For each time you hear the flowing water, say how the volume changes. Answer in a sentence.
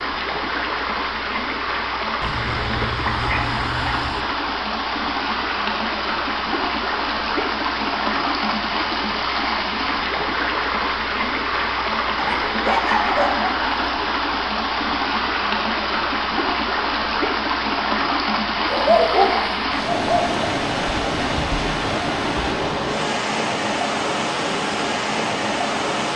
You can hear the flowing water from 0.0 to 26.1 s, at a steady volume.